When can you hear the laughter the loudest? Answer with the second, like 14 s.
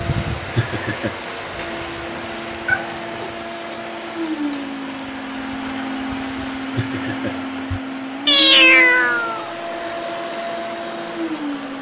1 s.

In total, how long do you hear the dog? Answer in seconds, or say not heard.
not heard.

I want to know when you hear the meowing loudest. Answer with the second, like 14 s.
9 s.